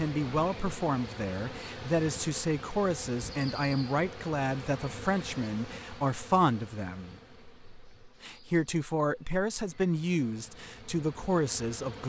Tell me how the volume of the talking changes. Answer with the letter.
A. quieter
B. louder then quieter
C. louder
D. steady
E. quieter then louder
D.